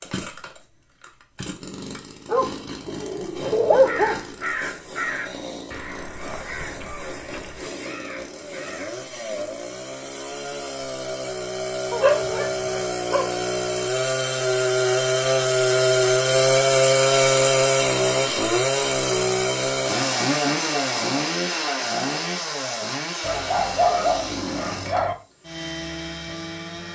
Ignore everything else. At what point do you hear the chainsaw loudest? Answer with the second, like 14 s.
17 s.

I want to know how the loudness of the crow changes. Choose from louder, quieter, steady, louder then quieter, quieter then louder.
quieter.